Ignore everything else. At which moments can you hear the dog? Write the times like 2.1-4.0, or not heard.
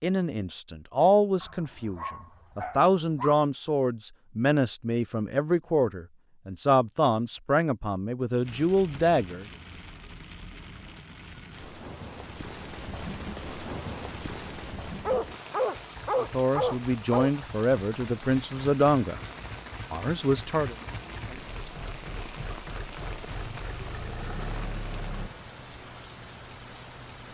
1.4-3.4, 15.1-17.3.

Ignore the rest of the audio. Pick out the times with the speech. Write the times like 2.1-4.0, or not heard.
0.0-9.4, 16.2-19.2, 19.9-20.8.